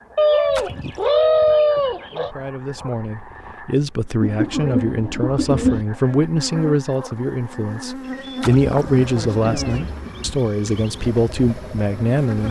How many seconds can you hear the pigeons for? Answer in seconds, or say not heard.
6 s.